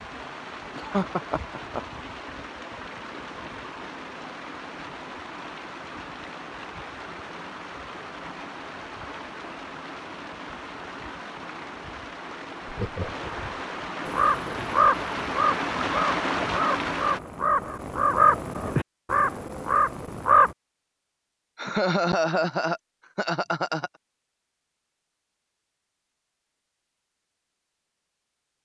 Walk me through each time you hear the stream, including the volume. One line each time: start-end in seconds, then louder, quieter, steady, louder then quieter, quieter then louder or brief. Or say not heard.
0.0-17.2 louder.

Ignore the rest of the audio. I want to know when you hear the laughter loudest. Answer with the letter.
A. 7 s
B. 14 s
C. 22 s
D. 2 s
C.